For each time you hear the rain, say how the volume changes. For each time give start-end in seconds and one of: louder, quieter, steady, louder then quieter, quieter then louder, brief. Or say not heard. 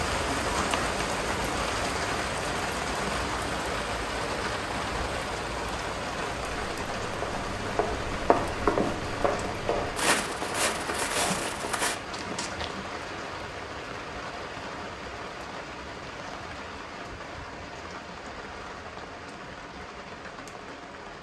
0.0-21.1 quieter.